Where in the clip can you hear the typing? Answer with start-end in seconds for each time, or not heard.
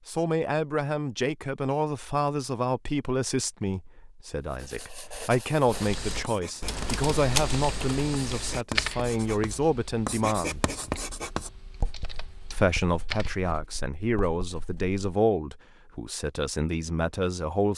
5.7-13.3.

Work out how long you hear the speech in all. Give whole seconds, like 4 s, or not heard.
16 s.